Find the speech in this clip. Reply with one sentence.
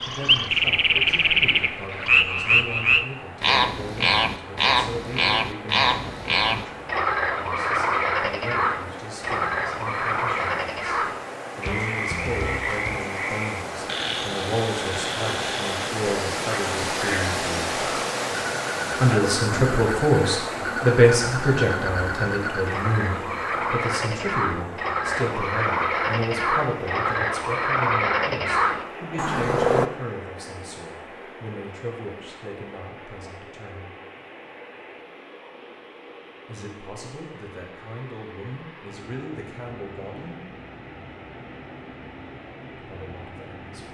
You can hear the speech from 0.0 to 17.8 s, from 19.0 to 34.0 s, from 36.5 to 40.5 s and from 42.8 to 43.9 s.